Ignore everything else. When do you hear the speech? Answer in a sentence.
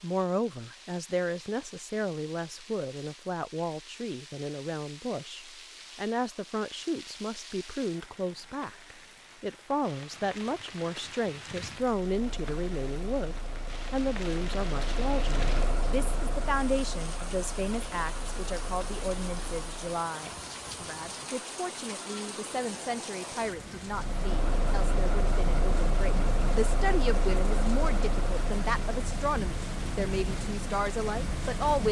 The speech can be heard from 0.0 to 31.8 s.